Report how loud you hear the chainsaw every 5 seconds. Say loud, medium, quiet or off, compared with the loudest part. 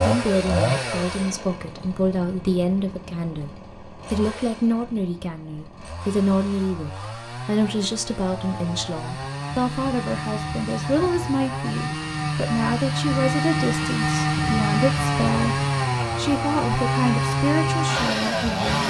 medium, quiet, loud, loud.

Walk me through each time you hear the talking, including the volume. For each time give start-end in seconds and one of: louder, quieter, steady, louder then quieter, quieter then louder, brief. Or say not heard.
0.0-18.8 steady.